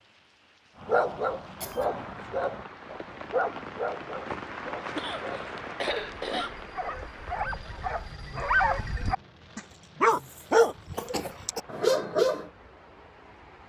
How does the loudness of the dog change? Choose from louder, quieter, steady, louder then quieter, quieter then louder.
quieter then louder.